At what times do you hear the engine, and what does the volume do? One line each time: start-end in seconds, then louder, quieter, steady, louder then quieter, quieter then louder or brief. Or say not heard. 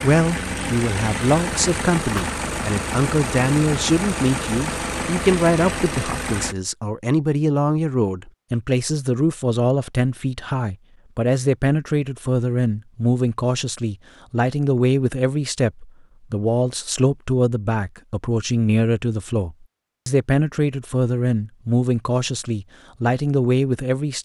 0.0-6.5 steady.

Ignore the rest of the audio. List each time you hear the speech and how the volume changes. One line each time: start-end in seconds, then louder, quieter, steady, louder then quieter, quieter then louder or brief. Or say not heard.
0.0-24.1 steady.